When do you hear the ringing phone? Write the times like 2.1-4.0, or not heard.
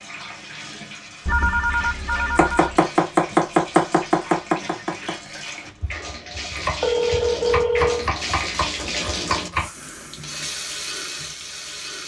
1.2-2.8, 6.8-8.1.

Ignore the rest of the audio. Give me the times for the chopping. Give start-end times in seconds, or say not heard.
2.4-5.2, 5.8-9.7.